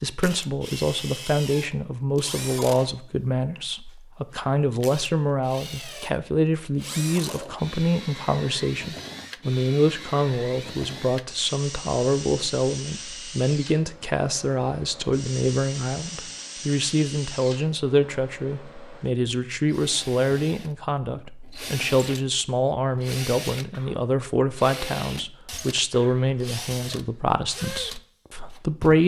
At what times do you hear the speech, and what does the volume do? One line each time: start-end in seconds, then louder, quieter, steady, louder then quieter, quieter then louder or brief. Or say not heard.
0.0-29.0 steady.